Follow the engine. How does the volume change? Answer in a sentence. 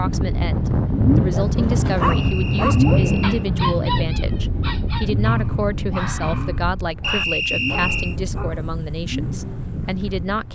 The volume of the engine goes down.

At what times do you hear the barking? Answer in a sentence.
The barking can be heard from 1.3 to 10.3 s.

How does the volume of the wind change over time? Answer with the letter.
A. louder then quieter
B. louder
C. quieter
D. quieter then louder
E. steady
C.